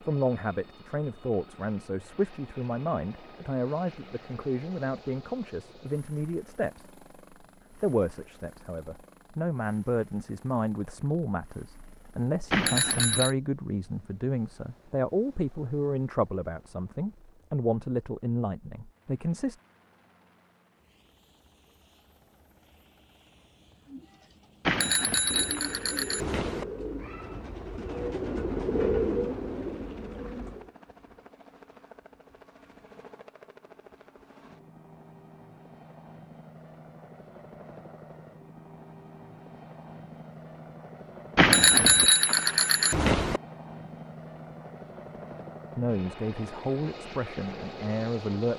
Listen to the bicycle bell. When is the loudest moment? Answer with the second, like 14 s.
42 s.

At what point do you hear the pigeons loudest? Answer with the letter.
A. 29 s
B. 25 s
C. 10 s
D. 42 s
A.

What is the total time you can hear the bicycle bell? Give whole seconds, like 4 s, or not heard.
5 s.